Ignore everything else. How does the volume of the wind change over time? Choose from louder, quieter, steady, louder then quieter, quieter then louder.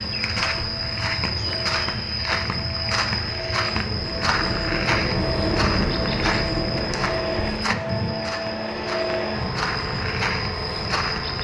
louder then quieter.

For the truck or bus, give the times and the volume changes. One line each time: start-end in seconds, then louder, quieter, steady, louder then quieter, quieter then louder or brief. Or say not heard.
0.0-11.3 louder.